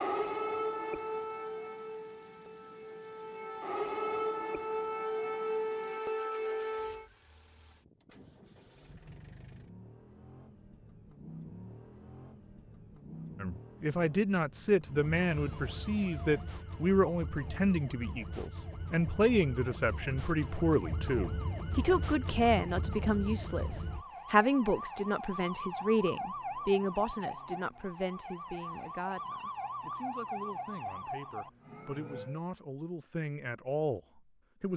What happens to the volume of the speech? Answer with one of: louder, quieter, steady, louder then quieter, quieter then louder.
quieter.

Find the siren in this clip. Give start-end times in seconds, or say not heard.
0.0-7.0, 14.8-32.4.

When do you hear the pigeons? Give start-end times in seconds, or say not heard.
not heard.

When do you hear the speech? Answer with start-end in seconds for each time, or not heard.
13.4-34.7.